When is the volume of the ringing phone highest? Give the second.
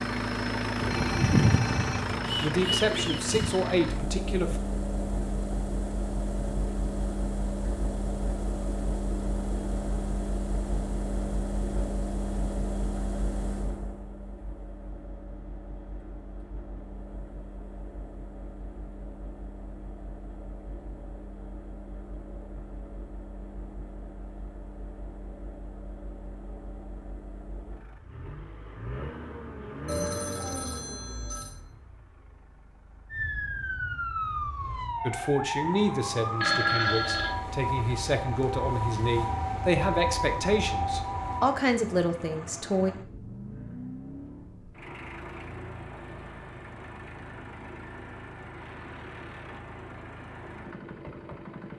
37 s.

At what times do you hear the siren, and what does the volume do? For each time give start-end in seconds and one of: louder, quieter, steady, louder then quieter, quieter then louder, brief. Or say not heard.
33.1-41.5 steady.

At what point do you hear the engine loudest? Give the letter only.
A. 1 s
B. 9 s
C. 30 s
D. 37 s
A.